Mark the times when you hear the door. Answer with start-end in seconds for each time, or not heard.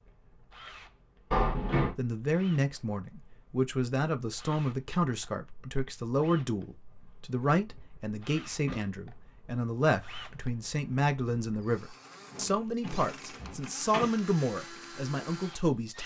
1.3-1.9, 7.0-8.9, 12.3-14.1.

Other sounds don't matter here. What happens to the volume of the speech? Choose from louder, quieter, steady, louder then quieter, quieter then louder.
steady.